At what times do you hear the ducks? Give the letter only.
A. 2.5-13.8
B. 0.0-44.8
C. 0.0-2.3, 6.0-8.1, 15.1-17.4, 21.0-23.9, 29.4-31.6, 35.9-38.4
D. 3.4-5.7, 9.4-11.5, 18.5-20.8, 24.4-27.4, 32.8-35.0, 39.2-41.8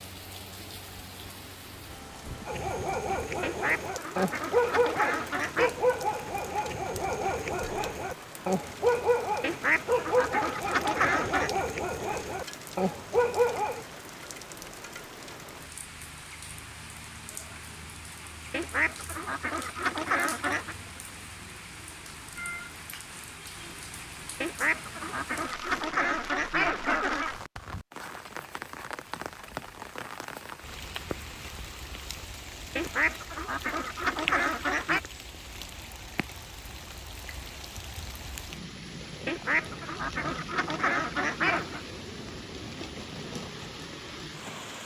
D.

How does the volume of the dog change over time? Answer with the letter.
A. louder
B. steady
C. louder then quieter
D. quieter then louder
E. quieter
B.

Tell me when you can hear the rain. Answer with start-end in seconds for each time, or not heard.
0.0-44.8.